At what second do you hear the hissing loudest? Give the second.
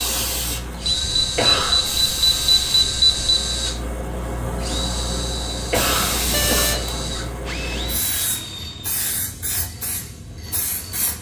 6 s.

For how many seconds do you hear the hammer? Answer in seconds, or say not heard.
not heard.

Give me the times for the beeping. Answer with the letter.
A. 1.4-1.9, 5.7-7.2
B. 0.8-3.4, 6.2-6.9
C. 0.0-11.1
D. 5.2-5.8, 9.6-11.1
B.